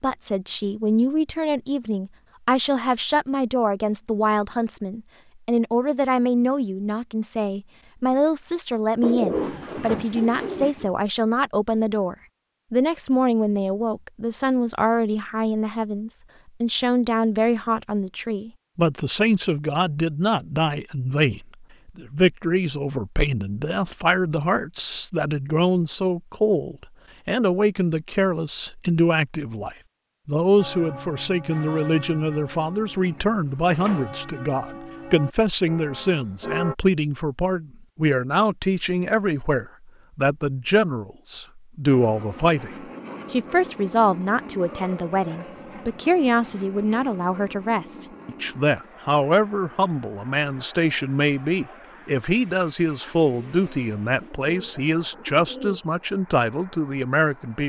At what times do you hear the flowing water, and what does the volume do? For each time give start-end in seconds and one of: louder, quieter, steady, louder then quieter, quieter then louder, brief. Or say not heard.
not heard.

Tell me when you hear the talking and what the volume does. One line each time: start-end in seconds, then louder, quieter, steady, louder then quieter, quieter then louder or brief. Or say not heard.
0.0-42.7 steady
43.3-57.6 steady.